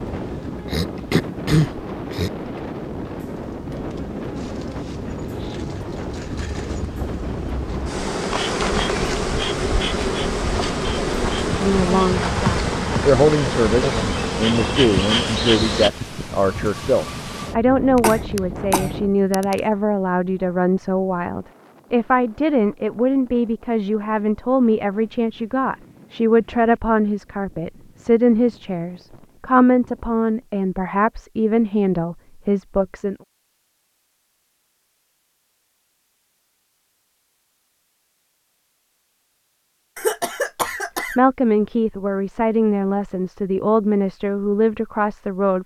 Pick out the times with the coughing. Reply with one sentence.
You can hear the coughing from 0.7 to 2.6 s, from 17.9 to 19.6 s and from 40.0 to 41.2 s.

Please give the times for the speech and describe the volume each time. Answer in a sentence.
You can hear the speech from 11.6 to 33.1 s, at a steady volume; and from 41.1 to 45.6 s, at a steady volume.